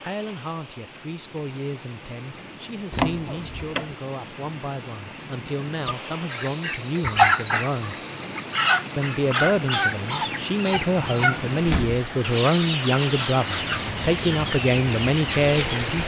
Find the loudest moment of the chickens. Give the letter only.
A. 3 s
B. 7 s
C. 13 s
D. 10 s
B.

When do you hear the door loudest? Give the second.
3 s.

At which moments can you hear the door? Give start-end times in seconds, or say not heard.
2.9-3.9, 11.6-12.0.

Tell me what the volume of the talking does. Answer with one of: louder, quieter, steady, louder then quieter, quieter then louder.
louder.